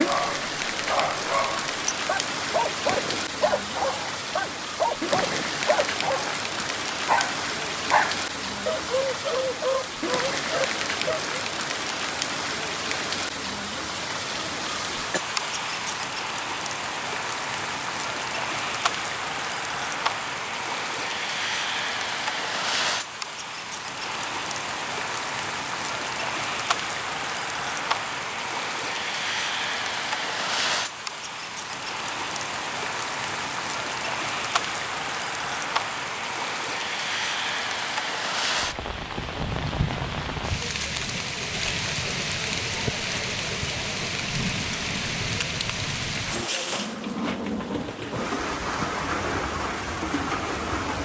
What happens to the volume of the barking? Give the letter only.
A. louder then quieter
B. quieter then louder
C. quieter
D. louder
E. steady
E.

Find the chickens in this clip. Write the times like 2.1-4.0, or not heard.
not heard.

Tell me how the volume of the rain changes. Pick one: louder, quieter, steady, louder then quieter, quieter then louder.
steady.